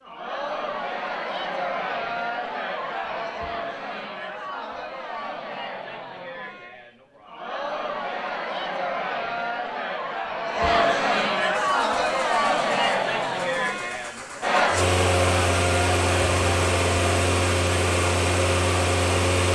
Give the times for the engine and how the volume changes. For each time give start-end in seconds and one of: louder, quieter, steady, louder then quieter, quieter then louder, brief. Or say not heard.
11.5-19.4 louder.